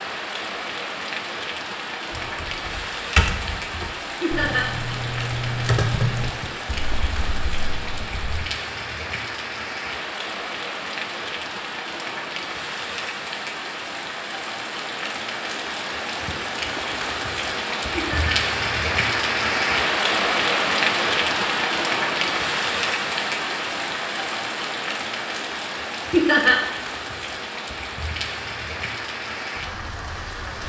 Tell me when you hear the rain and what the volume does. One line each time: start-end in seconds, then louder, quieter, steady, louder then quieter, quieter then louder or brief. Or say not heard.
0.0-30.6 louder then quieter.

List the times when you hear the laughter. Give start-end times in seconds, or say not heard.
4.2-4.7, 17.9-18.4, 26.1-26.6.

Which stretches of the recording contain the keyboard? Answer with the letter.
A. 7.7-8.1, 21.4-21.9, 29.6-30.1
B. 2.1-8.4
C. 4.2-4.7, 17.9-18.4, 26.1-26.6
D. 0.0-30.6
B.